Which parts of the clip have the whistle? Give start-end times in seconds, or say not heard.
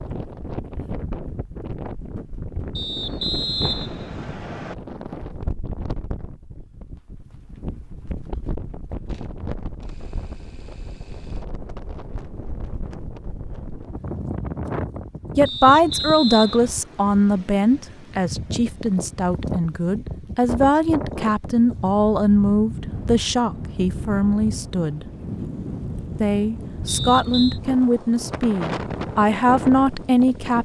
2.8-4.8, 15.4-16.8, 26.9-27.6.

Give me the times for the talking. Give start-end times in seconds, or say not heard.
15.3-25.1, 26.2-30.6.